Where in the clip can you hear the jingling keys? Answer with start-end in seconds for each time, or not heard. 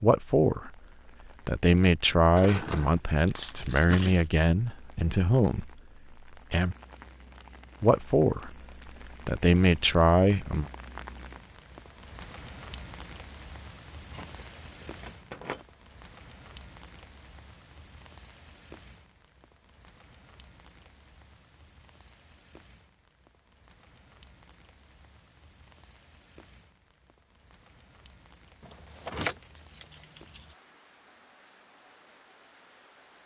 2.4-4.2, 14.1-15.6, 28.6-30.4.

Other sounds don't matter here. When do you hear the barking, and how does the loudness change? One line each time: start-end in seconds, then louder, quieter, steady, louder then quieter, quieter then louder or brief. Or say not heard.
not heard.